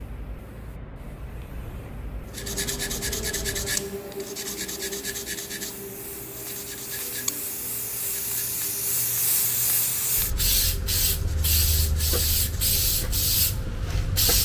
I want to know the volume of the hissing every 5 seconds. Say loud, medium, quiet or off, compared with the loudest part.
quiet, medium, loud.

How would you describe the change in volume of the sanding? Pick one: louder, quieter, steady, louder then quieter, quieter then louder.
quieter.